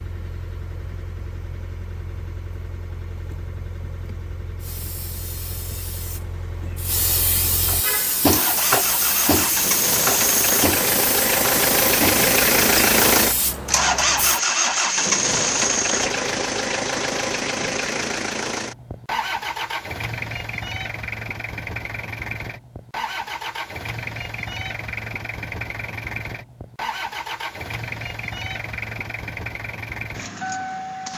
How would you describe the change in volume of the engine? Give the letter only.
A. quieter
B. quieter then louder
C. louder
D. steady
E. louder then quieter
E.